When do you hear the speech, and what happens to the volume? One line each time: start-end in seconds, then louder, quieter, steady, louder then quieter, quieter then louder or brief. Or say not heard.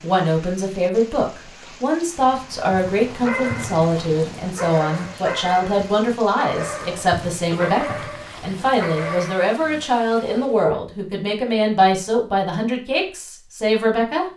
0.0-14.2 steady.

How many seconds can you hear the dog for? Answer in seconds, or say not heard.
9 s.